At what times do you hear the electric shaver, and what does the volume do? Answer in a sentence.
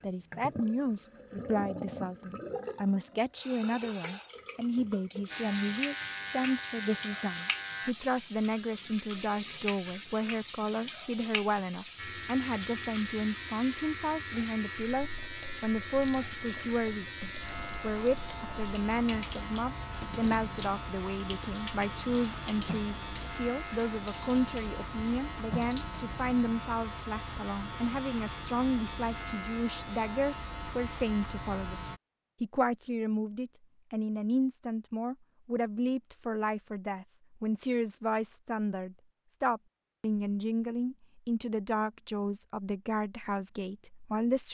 The electric shaver can be heard briefly from 5.3 to 8.0 s; and from 11.9 to 32.0 s, at a steady volume.